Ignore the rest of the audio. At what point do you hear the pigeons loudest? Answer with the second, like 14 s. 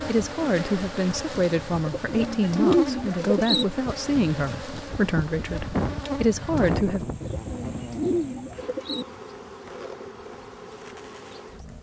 3 s.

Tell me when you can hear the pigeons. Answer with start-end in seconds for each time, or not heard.
1.9-3.6, 7.2-9.1.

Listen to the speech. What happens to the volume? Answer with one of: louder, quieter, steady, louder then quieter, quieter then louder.
steady.